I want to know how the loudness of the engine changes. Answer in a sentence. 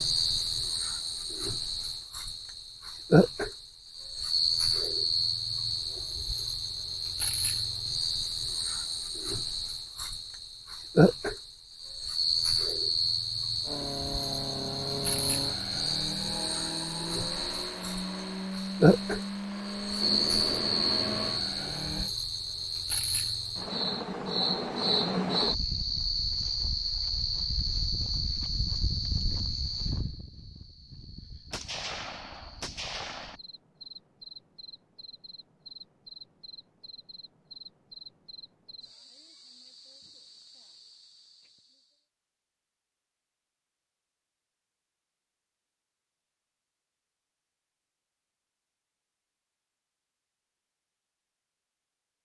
The loudness of the engine stays about the same.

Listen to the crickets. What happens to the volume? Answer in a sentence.
The volume of the crickets goes down.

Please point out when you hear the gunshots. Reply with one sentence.
The gunshots can be heard from 20.0 to 21.6 s and from 31.5 to 33.4 s.